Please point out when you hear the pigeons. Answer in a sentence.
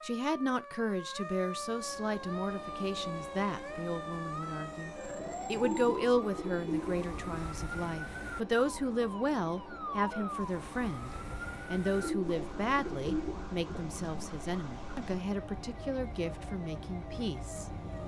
You can hear the pigeons from 5.5 to 7.4 s and from 11.9 to 13.4 s.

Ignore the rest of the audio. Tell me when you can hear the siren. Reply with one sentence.
You can hear the siren from 0.0 to 18.0 s.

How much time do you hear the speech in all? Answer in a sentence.
You can hear the speech for 18 seconds altogether.